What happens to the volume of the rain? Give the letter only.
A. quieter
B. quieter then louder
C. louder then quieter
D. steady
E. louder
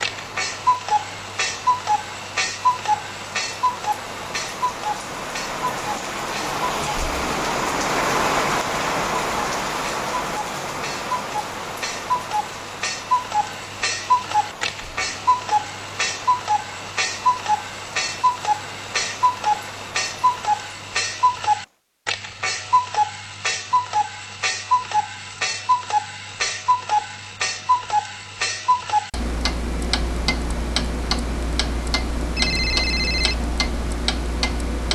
C.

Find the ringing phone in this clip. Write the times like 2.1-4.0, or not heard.
32.4-33.5.